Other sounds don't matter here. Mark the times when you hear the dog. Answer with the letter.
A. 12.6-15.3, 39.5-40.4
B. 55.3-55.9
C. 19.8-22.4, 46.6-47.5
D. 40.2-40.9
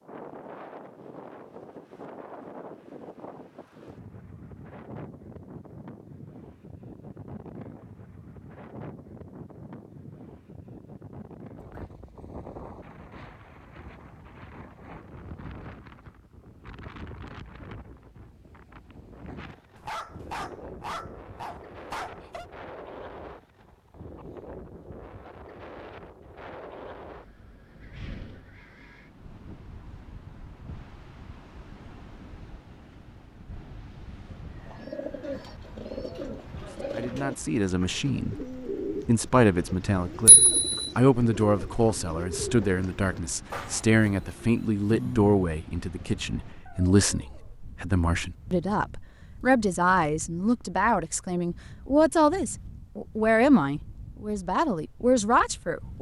C.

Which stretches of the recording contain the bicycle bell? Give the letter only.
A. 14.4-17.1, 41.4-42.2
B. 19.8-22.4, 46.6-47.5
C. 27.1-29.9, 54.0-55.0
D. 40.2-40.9
D.